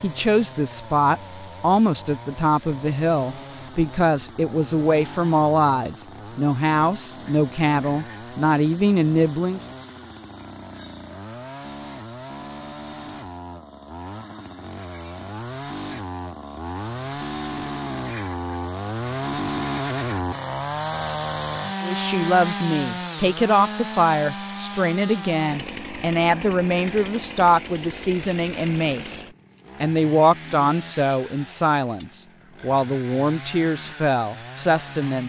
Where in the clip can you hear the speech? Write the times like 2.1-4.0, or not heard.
0.0-9.6, 21.8-35.2.